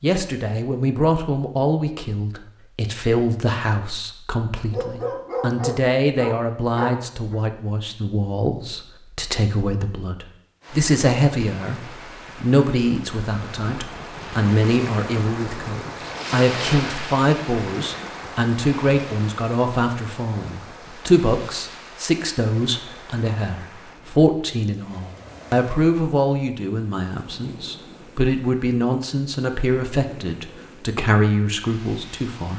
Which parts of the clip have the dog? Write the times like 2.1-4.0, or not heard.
4.7-7.3.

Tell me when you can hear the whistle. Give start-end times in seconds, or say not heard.
not heard.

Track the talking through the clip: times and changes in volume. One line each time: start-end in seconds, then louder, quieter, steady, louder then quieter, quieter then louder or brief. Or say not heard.
0.0-32.5 steady.